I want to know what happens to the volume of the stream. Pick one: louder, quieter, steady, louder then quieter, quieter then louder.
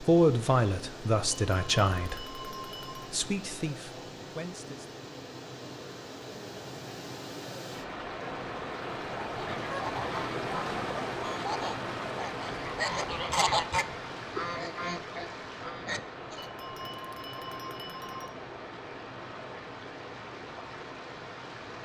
louder then quieter.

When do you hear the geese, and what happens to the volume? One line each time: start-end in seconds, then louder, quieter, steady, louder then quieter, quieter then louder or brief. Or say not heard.
9.2-16.5 louder then quieter.